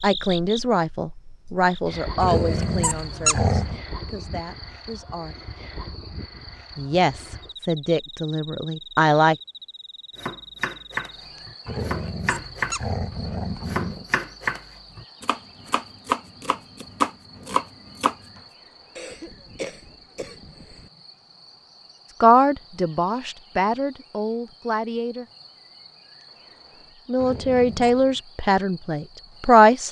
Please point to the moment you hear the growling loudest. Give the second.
3 s.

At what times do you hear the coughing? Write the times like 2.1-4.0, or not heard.
18.9-20.9.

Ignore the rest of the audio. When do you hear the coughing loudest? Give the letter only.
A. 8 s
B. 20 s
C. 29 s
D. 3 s
B.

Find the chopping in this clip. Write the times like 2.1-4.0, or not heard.
10.2-18.1.